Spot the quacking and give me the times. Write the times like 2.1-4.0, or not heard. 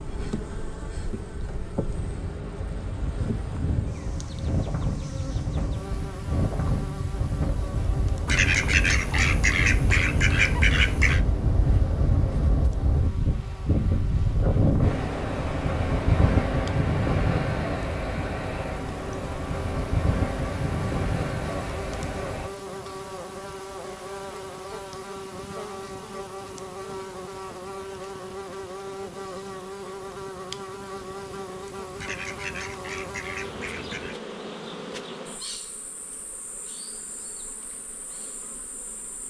8.2-11.2, 31.9-34.1.